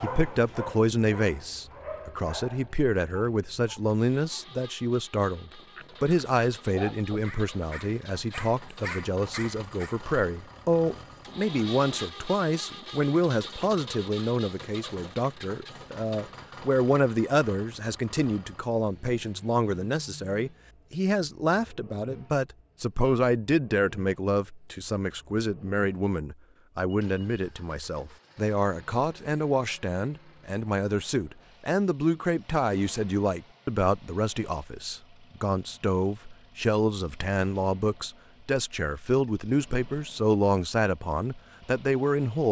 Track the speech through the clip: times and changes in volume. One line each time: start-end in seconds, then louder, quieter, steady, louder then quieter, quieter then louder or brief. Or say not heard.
0.0-42.4 steady.